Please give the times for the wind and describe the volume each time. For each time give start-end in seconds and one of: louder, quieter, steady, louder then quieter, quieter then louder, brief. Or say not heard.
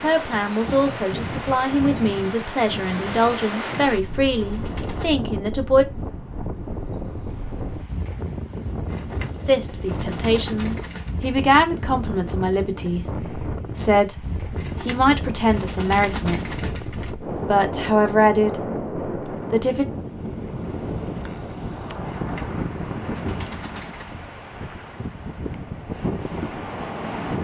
0.0-27.3 steady.